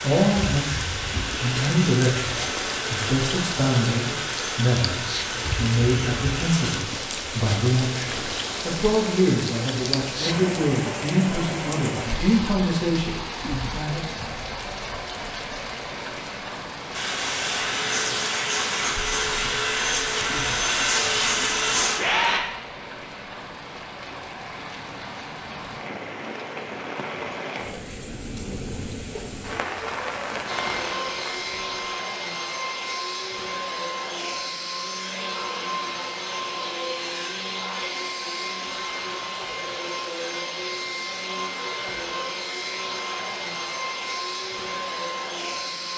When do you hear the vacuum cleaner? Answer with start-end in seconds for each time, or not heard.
0.0-6.8, 16.9-22.4, 30.4-45.9.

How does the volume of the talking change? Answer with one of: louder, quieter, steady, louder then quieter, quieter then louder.
steady.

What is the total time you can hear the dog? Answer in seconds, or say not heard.
not heard.